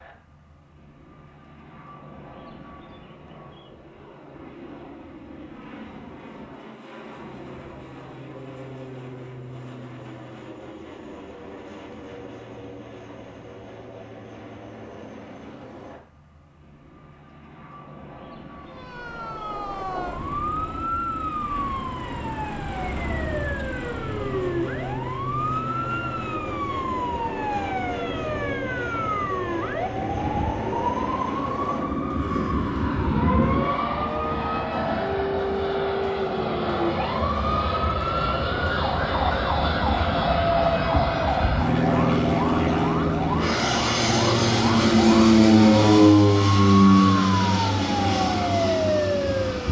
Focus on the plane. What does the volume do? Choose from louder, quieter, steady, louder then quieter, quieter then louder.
louder.